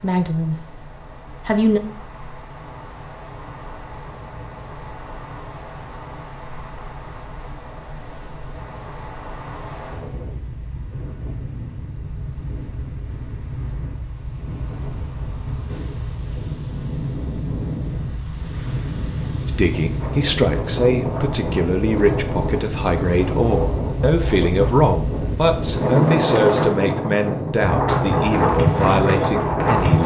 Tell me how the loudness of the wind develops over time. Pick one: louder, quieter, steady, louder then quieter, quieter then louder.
louder.